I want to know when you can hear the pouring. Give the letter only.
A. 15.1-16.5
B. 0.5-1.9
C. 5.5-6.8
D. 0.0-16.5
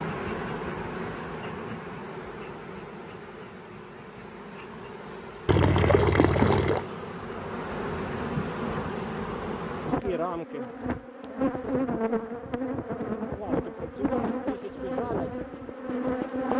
C.